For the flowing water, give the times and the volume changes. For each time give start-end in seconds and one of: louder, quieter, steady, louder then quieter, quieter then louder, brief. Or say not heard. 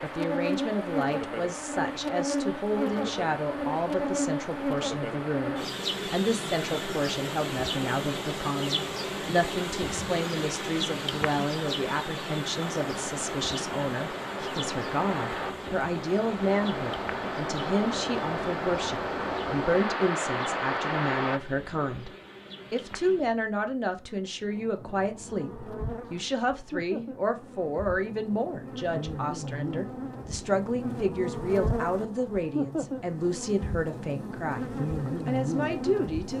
0.0-21.4 louder.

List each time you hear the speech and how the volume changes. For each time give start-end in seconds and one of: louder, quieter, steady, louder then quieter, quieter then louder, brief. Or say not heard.
0.0-22.1 steady
22.7-34.6 steady
35.2-36.3 brief.